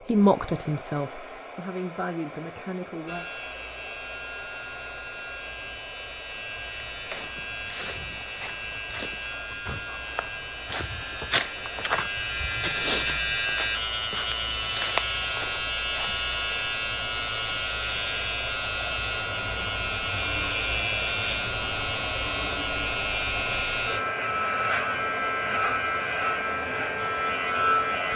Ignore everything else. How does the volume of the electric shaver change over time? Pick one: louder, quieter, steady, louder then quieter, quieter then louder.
louder.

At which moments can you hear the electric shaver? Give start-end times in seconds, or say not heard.
3.0-28.0.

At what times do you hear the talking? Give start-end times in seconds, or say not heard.
0.0-3.2.